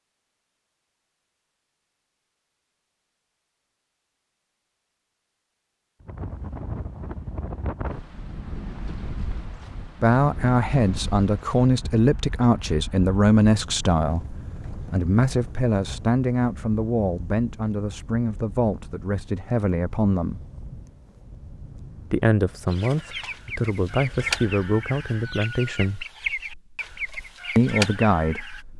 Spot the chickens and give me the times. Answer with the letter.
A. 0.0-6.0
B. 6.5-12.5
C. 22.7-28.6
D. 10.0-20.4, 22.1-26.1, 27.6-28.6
C.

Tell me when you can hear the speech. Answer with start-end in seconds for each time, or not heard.
10.0-20.4, 22.1-26.1, 27.6-28.6.